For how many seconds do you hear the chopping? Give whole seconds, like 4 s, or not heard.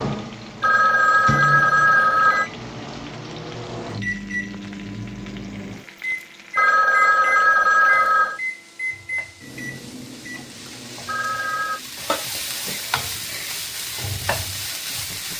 not heard.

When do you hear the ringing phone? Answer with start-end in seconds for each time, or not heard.
0.6-2.5, 6.5-8.4, 11.1-11.8.